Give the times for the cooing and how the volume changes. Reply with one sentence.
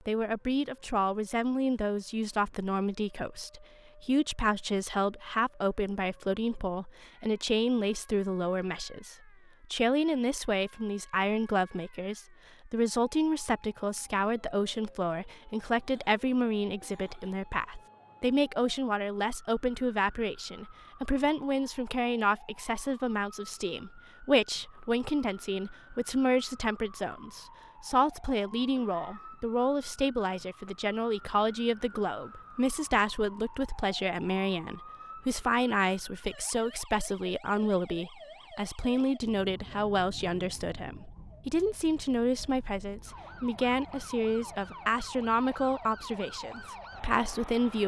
The cooing can't be heard in this clip.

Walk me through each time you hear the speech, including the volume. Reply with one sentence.
You can hear the speech from 0.1 to 47.8 s, at a steady volume.